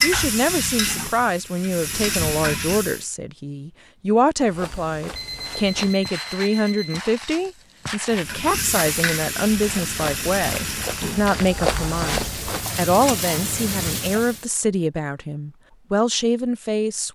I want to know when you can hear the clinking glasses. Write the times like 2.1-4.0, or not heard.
not heard.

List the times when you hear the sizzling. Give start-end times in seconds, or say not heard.
0.0-3.0, 8.1-14.4.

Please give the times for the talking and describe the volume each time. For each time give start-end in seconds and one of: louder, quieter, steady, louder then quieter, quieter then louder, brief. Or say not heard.
0.0-17.1 steady.